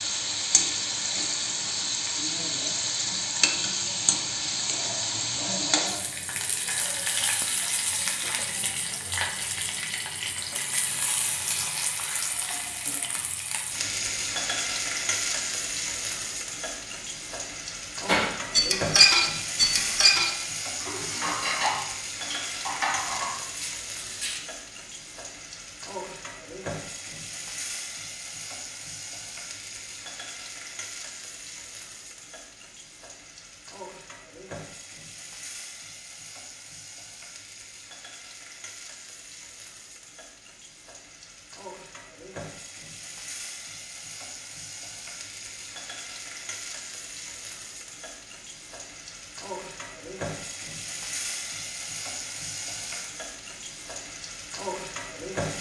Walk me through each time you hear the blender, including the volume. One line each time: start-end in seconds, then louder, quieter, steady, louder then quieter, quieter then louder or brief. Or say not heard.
not heard.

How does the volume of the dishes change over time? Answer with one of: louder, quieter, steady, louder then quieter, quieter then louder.
quieter.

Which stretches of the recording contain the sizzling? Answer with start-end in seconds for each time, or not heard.
0.0-55.5.